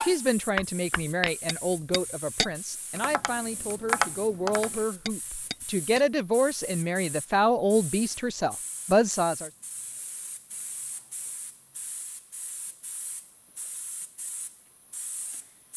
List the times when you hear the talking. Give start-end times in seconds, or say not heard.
0.0-9.5.